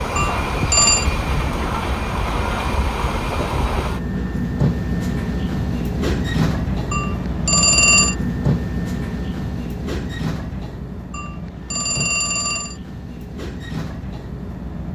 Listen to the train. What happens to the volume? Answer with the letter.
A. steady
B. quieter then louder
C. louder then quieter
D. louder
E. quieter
E.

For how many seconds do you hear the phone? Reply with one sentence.
You can hear the phone for 4 seconds altogether.